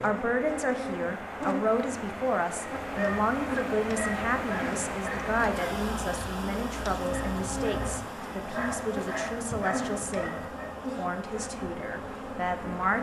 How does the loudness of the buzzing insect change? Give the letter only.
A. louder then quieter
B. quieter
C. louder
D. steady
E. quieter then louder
D.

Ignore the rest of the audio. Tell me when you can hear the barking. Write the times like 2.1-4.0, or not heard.
2.8-10.8.